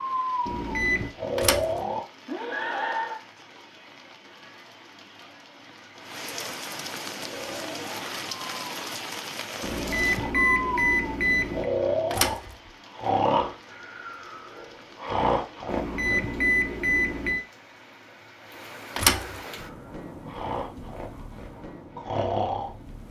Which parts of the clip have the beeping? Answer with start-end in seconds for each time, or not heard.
0.5-1.1, 9.6-11.7, 15.7-17.4.